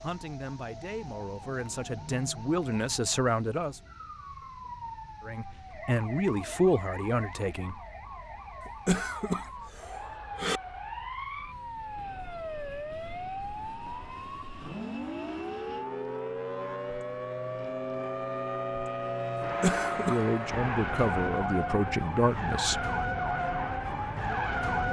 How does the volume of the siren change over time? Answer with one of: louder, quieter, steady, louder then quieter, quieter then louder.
louder.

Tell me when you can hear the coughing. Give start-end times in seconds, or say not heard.
8.7-10.6, 19.4-20.2.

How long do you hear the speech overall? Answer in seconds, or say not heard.
9 s.